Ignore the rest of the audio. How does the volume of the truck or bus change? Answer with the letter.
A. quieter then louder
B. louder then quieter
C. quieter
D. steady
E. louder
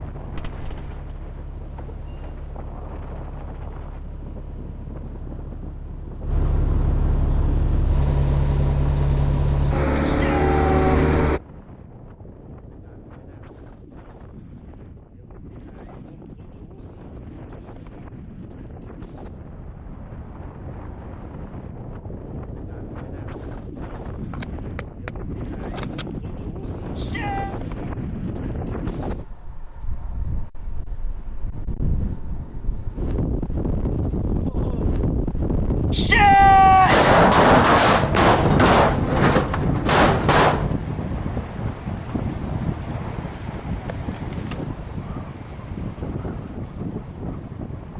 E.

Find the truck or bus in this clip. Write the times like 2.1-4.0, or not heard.
0.0-11.4.